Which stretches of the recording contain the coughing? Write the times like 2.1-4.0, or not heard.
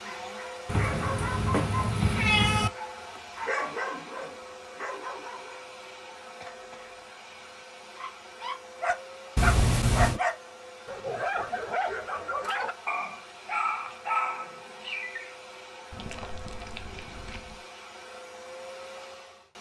6.4-7.0.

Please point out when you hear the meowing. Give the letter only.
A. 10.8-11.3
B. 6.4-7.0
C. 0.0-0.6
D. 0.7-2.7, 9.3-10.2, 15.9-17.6
D.